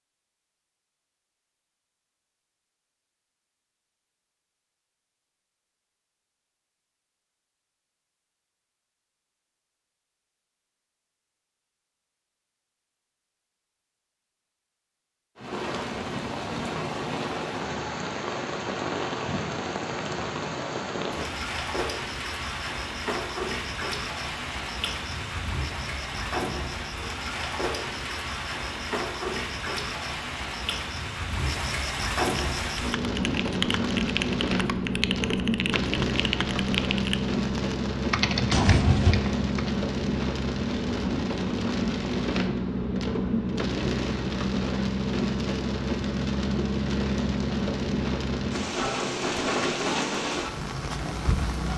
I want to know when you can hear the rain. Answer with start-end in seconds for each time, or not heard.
15.3-51.7.